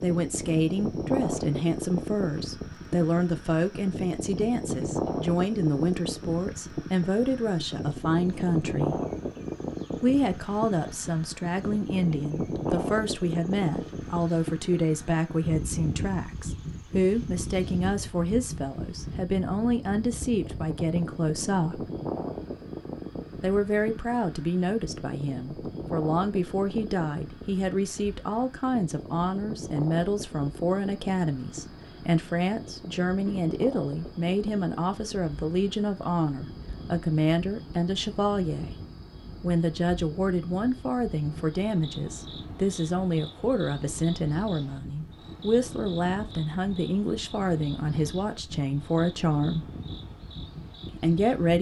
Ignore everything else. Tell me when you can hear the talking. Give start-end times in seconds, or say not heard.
0.0-9.0, 9.9-21.9, 23.4-38.7, 39.4-49.7, 51.0-51.5.